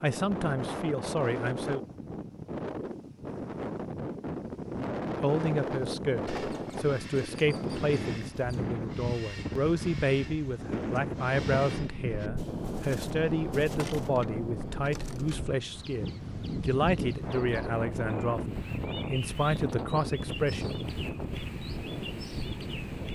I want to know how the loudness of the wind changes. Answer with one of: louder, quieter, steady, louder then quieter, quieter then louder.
steady.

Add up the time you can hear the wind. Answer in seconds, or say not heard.
23 s.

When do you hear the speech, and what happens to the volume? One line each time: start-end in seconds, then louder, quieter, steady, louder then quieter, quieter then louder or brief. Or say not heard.
0.0-1.8 brief
5.2-20.9 steady.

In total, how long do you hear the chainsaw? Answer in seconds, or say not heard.
not heard.